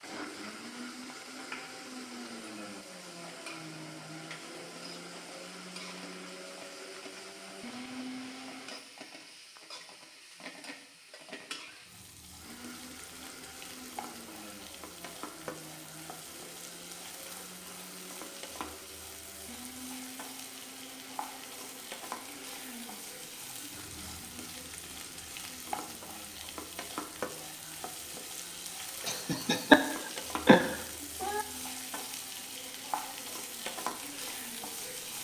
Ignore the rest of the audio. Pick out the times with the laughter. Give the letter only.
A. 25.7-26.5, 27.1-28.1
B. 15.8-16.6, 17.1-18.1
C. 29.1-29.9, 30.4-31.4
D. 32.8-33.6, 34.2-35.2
C.